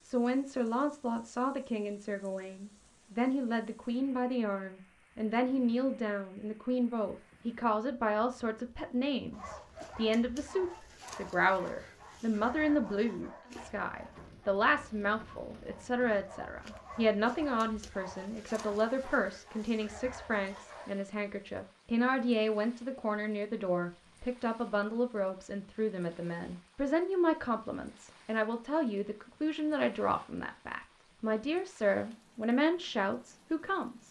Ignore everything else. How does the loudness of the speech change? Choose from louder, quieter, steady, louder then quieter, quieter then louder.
steady.